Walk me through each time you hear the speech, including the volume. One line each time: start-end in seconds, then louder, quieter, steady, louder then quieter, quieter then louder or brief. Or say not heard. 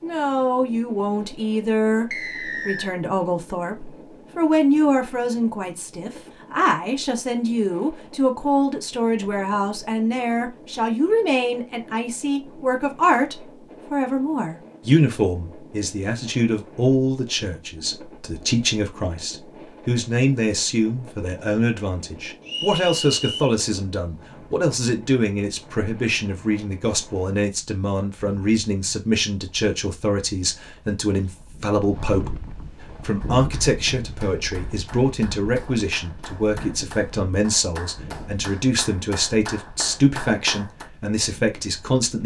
0.0-42.2 steady.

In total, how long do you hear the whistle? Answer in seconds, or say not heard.
2 s.